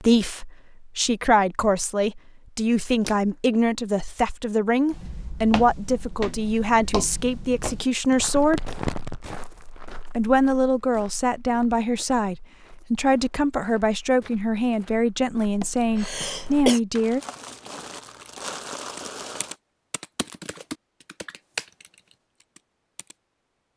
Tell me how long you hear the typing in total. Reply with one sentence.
The typing can be heard for 5 seconds in total.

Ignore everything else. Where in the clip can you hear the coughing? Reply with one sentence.
The coughing can be heard from 15.6 to 16.8 s.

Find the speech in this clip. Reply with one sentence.
The speech can be heard from 0.0 to 8.7 s and from 10.2 to 17.2 s.